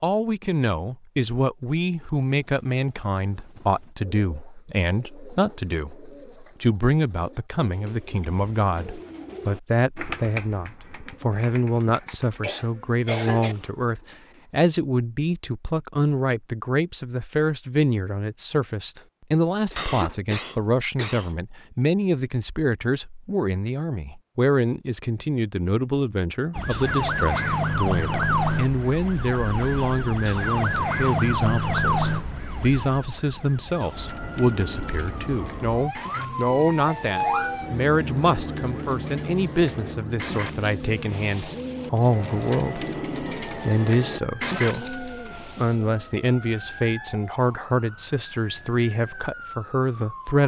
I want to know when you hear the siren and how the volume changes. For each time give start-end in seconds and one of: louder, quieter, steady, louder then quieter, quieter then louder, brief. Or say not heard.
26.5-50.4 quieter.